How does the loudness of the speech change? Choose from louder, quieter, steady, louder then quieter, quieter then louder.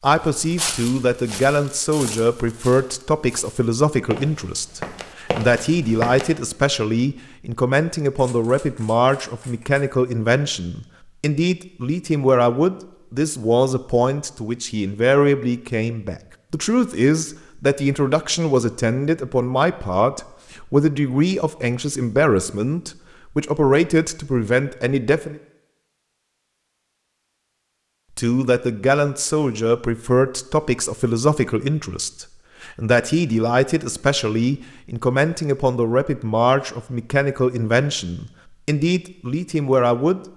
steady.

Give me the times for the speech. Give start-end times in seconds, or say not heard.
0.0-25.4, 28.1-40.2.